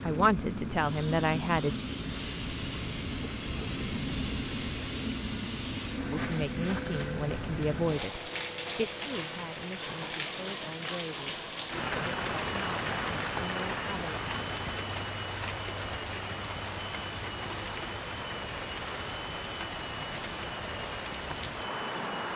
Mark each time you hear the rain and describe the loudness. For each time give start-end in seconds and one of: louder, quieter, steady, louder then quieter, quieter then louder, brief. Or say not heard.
0.0-22.3 steady.